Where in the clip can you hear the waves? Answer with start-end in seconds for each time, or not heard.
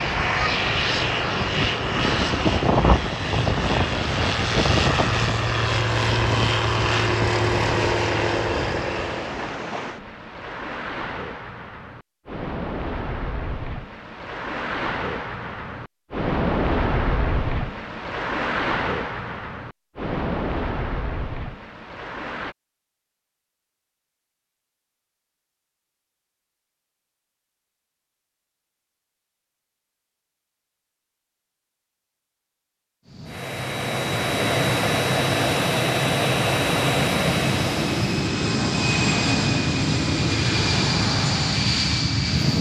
0.0-22.6.